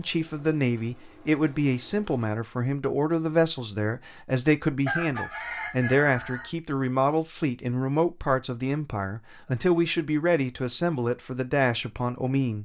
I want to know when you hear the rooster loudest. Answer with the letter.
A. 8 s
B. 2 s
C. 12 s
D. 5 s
D.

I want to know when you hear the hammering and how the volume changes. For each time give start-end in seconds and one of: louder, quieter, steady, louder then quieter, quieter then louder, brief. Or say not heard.
not heard.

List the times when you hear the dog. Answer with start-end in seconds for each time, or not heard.
not heard.